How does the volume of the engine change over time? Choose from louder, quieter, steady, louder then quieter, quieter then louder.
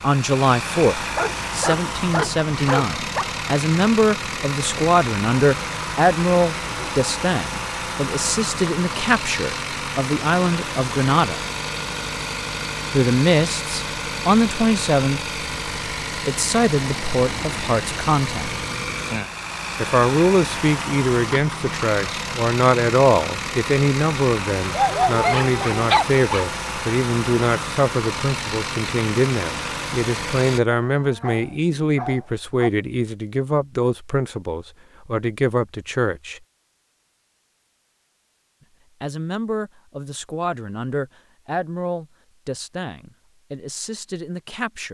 steady.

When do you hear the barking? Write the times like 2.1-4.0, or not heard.
1.1-3.2, 24.7-26.4, 30.8-32.7.